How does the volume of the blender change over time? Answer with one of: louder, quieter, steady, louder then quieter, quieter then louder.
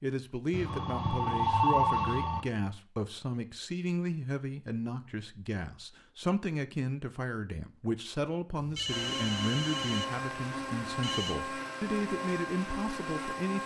steady.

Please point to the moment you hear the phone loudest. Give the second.
2 s.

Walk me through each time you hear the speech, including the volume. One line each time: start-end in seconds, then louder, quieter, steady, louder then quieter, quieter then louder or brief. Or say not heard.
0.0-13.6 steady.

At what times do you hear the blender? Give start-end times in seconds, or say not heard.
8.8-13.6.